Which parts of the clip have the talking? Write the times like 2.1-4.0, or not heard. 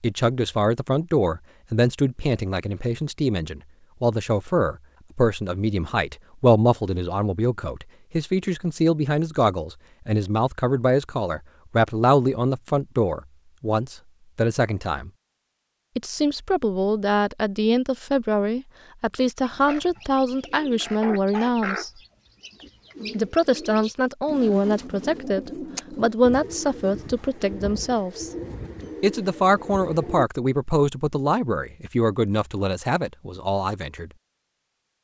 0.0-15.1, 15.9-21.9, 23.1-28.3, 29.0-34.1.